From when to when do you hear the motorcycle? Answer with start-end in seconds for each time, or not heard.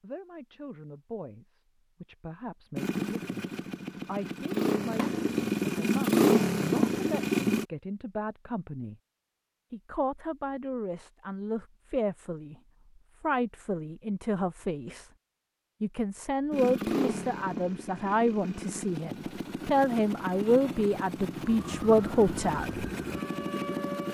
2.8-7.7, 16.5-24.0.